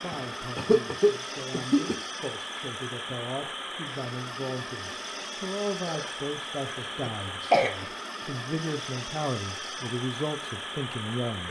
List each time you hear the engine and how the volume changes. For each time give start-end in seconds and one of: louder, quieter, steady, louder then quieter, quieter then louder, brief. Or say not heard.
0.0-11.4 steady.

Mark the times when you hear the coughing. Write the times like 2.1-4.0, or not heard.
0.1-2.0, 5.8-7.8.